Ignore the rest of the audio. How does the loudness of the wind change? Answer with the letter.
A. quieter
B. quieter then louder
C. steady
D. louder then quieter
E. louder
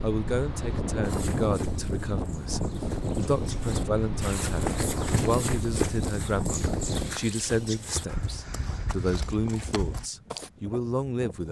A.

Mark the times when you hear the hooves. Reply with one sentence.
The hooves can be heard from 1.0 to 10.5 s.